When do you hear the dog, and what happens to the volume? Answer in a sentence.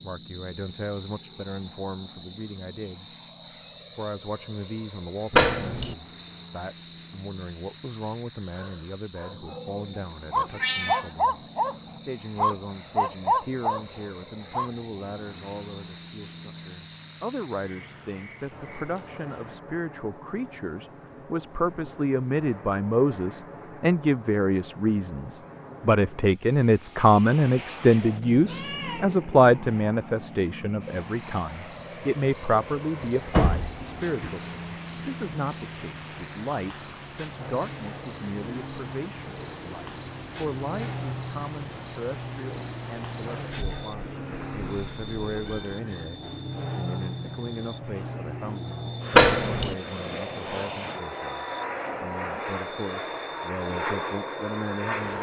The dog can be heard from 8.1 to 14.7 s, getting louder.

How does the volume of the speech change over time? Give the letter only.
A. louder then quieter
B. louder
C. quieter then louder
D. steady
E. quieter
A.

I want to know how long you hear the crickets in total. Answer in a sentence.
The crickets can be heard for 55 seconds in total.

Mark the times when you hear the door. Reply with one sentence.
You can hear the door from 5.3 to 6.0 s, from 33.0 to 34.3 s and from 49.1 to 49.8 s.